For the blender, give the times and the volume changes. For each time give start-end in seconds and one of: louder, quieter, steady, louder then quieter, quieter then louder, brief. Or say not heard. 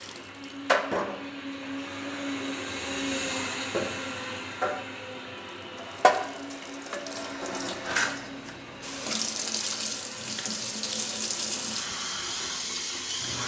0.0-13.4 quieter.